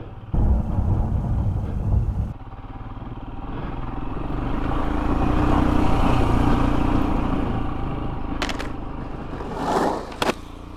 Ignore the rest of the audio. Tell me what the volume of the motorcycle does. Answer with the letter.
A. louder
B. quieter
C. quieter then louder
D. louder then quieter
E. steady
D.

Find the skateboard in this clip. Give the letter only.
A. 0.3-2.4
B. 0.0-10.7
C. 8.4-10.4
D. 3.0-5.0
C.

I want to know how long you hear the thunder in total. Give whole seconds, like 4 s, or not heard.
2 s.